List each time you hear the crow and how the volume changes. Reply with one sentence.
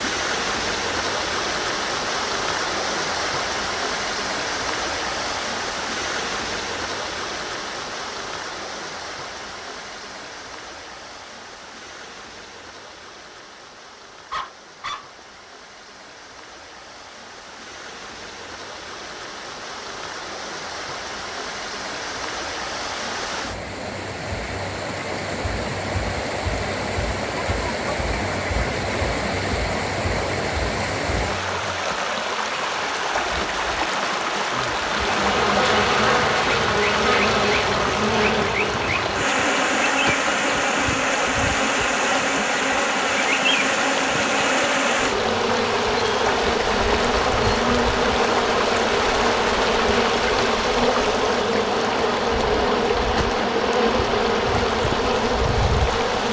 The crow can't be heard in this clip.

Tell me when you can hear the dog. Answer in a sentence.
The dog can be heard from 14.3 to 15.4 s.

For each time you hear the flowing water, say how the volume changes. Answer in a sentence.
You can hear the flowing water from 0.0 to 56.2 s, getting quieter then louder.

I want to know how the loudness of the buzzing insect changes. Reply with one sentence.
The loudness of the buzzing insect stays about the same.